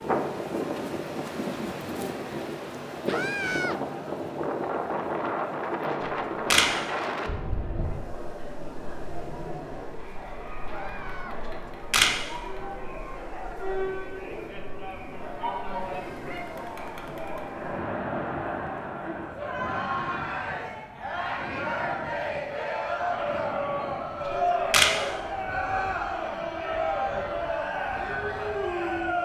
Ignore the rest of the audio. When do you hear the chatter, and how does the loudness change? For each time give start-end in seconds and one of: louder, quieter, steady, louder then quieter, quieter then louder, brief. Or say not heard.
0.0-29.1 louder.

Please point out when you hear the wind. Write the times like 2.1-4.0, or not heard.
0.0-29.1.